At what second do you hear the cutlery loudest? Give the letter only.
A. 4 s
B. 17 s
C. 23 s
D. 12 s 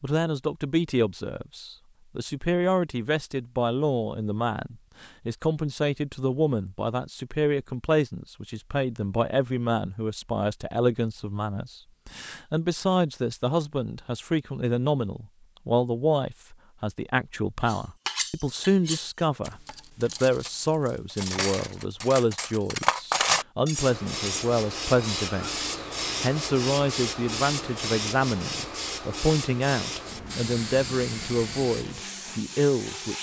C.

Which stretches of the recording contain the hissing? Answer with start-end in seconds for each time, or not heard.
23.7-33.1.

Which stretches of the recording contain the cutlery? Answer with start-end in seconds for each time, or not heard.
17.6-25.5.